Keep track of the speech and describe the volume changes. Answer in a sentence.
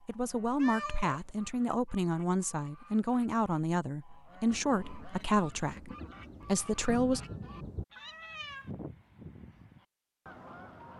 The volume of the speech stays about the same.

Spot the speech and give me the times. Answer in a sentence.
The speech can be heard from 0.1 to 7.2 s.